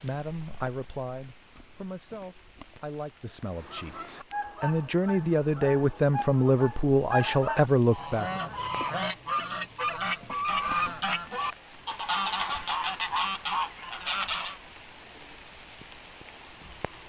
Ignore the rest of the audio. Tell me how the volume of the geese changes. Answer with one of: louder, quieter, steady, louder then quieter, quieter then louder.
louder.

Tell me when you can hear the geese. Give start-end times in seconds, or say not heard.
3.5-14.6.